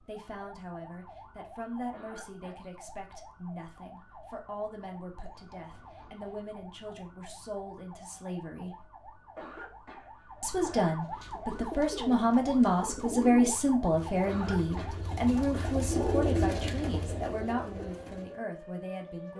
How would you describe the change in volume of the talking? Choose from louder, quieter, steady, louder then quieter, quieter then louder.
louder then quieter.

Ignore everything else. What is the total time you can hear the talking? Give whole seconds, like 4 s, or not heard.
18 s.